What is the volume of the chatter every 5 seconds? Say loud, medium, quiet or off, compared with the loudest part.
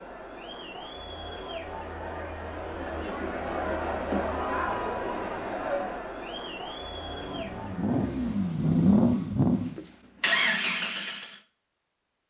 loud, loud, off.